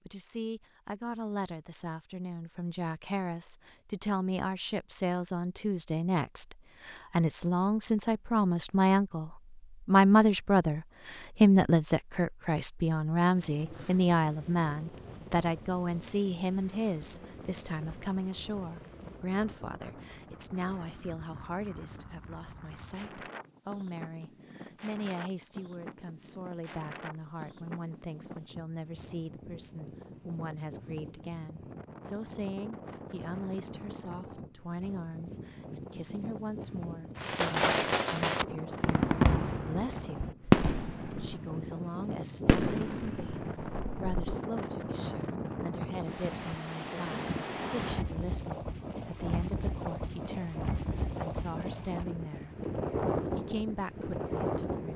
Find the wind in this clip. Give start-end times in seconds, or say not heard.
13.2-54.9.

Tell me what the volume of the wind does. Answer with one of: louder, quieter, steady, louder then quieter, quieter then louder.
louder.